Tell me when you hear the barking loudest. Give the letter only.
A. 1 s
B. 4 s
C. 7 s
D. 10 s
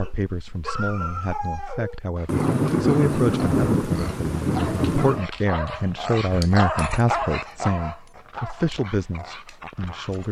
C.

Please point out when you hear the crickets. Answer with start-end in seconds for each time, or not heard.
not heard.